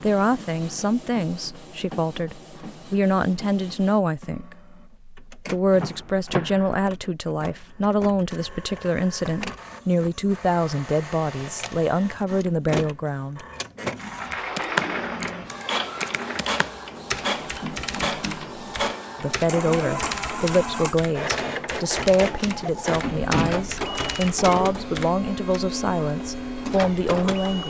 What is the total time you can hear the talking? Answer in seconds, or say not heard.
22 s.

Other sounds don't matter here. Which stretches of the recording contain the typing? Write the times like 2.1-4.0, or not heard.
14.2-25.6.